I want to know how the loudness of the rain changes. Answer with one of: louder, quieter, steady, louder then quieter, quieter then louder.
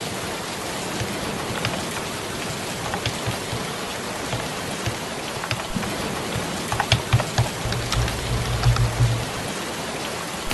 steady.